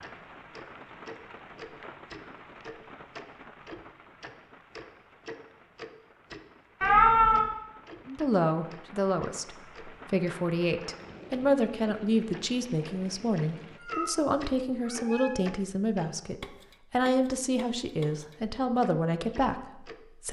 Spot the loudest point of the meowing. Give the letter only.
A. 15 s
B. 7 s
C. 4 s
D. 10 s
B.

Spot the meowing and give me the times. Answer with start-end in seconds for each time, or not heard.
6.8-7.5, 13.8-14.2, 14.8-15.4.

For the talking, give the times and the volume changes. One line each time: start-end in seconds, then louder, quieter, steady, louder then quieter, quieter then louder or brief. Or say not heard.
8.1-20.2 steady.